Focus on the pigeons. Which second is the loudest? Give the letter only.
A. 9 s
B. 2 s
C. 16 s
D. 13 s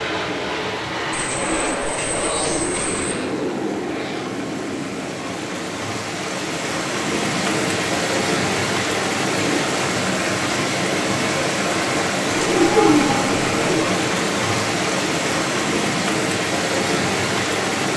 D.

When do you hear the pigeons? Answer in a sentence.
The pigeons can be heard from 1.1 to 3.1 s and from 12.3 to 13.9 s.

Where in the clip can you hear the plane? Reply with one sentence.
You can hear the plane from 0.0 to 6.0 s.